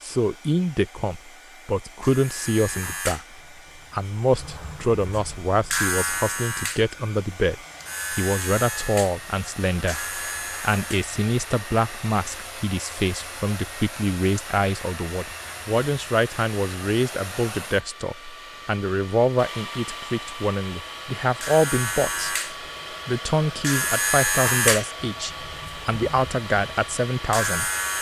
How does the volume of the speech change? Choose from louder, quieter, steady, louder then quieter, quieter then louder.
steady.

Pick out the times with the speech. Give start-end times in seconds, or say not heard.
0.0-3.2, 3.9-22.4, 23.1-27.7.